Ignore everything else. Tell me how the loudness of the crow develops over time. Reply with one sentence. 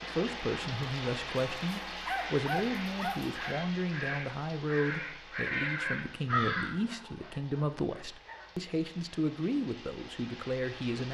The loudness of the crow goes up.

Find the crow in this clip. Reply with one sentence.
You can hear the crow from 2.0 to 6.7 s.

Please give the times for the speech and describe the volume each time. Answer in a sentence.
The speech can be heard from 0.0 to 11.0 s, at a steady volume.